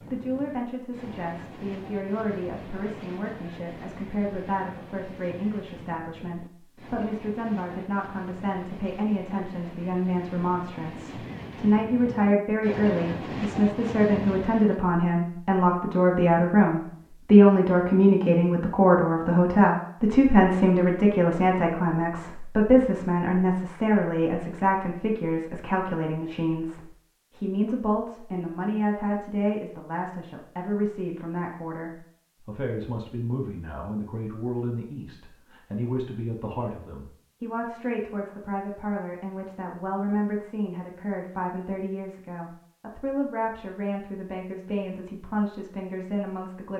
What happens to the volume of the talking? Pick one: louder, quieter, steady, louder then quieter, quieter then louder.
louder then quieter.